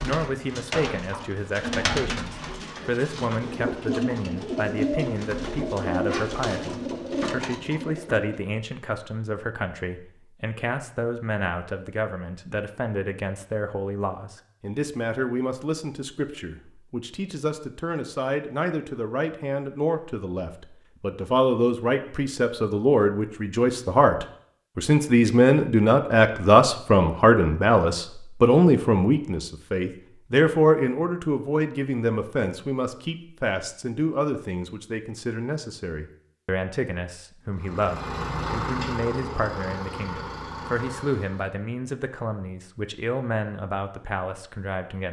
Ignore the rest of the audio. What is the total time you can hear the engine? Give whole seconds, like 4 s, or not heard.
4 s.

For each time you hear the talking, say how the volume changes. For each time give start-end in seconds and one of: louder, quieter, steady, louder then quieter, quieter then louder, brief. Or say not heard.
0.0-45.0 louder then quieter.